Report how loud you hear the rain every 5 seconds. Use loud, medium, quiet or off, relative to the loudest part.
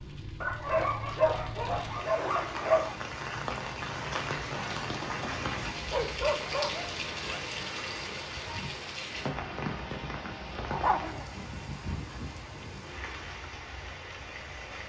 loud, loud, medium.